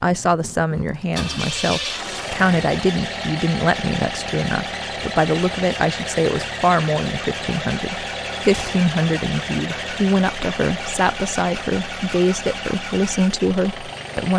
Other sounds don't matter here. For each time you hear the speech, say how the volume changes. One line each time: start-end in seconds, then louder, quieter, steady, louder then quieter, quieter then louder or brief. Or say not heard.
0.0-14.3 steady.